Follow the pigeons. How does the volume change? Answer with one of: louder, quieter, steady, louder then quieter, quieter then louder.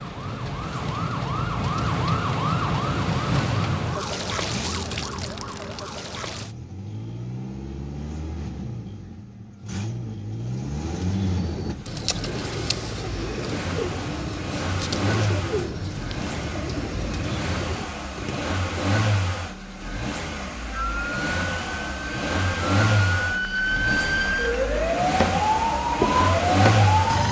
steady.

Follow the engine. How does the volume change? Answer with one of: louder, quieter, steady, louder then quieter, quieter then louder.
louder.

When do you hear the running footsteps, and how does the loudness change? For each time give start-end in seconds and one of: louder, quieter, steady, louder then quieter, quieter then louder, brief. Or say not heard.
not heard.